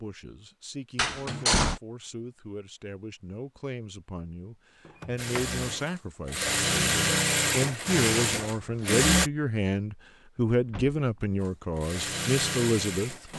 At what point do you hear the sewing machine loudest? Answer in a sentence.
The loudest moment of the sewing machine is at 7 seconds.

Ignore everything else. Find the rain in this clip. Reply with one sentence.
You can't hear the rain here.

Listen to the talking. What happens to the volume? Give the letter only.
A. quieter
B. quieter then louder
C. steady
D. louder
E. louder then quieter
D.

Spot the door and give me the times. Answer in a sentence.
You can hear the door from 0.9 to 1.8 s, from 4.8 to 5.5 s and from 10.6 to 11.0 s.